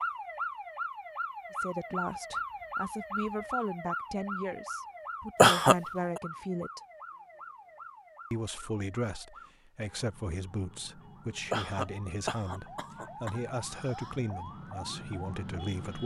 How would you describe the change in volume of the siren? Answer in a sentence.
The loudness of the siren goes down, then up.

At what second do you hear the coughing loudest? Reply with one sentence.
The loudest moment of the coughing is at 6 seconds.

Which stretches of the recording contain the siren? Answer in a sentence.
You can hear the siren from 0.0 to 16.0 s.